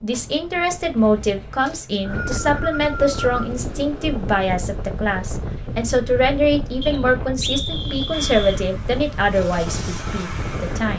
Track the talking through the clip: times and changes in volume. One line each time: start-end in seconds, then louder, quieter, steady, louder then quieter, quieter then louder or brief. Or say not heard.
0.0-10.9 steady.